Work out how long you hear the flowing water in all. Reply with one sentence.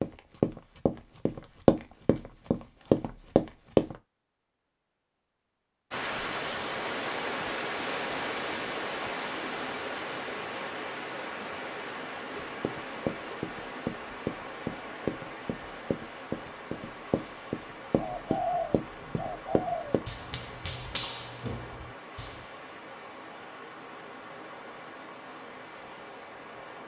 You can hear the flowing water for 21 seconds altogether.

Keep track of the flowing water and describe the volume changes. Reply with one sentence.
The loudness of the flowing water goes down.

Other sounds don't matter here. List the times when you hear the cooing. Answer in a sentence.
The cooing can be heard from 17.9 to 20.1 s.